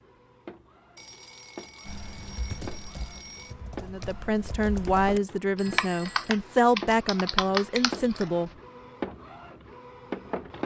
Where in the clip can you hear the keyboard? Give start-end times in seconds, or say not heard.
1.9-8.4.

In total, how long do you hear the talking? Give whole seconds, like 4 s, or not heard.
5 s.